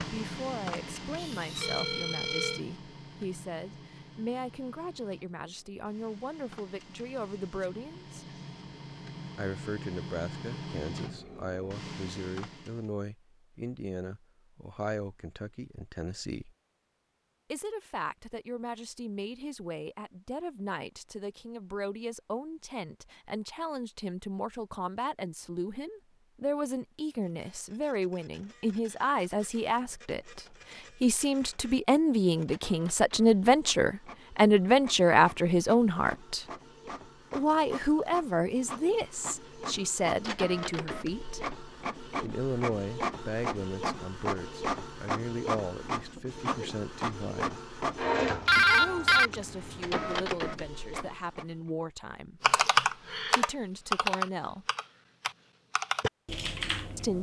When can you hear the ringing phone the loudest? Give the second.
49 s.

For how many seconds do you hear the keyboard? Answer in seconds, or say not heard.
5 s.